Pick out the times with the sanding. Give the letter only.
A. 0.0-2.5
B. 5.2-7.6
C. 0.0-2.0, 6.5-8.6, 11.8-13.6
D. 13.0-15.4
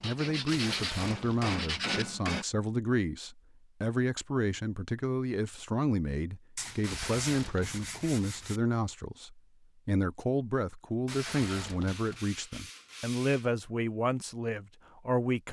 C.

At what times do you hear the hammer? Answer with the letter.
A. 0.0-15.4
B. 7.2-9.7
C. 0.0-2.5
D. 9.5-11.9
C.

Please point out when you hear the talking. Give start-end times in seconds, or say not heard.
0.0-15.4.